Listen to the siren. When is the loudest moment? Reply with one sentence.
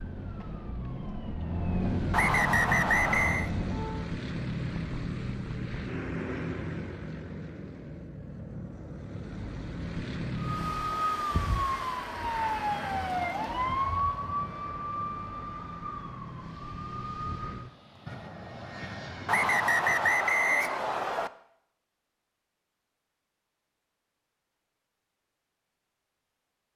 The volume of the siren peaks at 14 seconds.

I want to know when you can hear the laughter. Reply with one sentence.
The laughter can't be heard in this clip.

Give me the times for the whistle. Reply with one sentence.
You can hear the whistle from 2.1 to 3.5 s and from 19.2 to 21.3 s.